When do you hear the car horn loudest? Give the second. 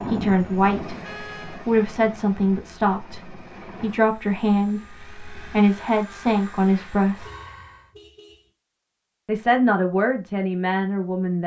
1 s.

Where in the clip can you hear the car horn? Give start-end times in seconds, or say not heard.
1.0-1.6, 7.2-8.5.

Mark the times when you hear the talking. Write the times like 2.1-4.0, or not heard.
0.1-7.3, 9.2-11.4.